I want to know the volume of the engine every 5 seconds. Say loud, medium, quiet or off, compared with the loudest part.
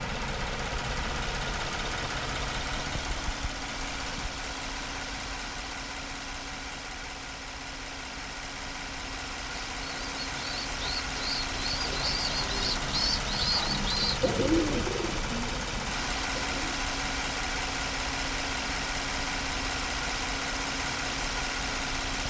loud, medium, loud, loud, loud.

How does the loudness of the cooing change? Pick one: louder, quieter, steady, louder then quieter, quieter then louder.
louder then quieter.